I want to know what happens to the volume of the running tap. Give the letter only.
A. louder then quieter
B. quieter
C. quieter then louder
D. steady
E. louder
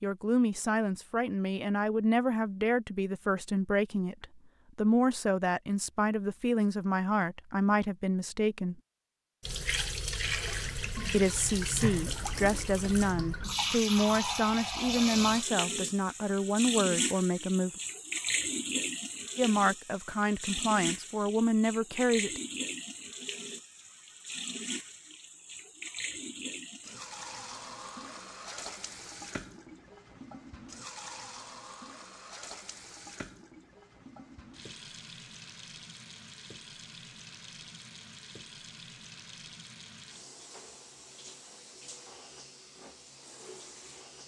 B.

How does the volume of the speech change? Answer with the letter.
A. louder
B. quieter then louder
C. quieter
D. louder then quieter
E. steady
E.